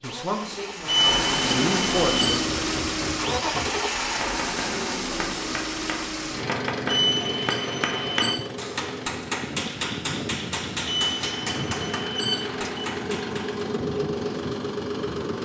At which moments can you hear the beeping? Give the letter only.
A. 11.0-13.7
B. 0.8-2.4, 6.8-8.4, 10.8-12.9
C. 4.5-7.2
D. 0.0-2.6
B.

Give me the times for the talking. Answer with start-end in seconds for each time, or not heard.
0.0-2.6.